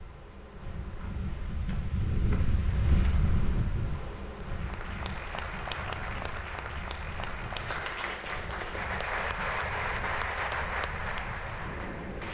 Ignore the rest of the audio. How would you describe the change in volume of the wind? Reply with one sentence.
The loudness of the wind goes down.